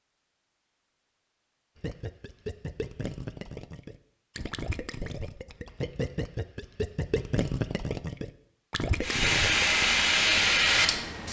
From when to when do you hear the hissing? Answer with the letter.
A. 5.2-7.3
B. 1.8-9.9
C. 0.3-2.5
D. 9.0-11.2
D.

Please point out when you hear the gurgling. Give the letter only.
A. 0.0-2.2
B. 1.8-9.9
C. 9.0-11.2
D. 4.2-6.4
B.